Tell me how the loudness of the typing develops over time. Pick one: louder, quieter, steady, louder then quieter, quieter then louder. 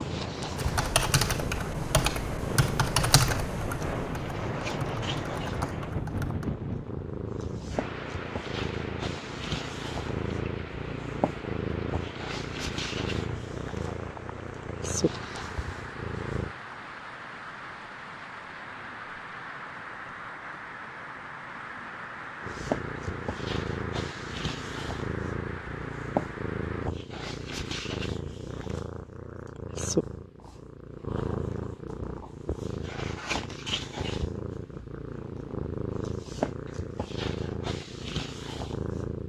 quieter.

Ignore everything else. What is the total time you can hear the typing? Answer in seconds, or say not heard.
6 s.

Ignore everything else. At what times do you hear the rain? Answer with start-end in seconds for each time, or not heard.
0.0-26.9.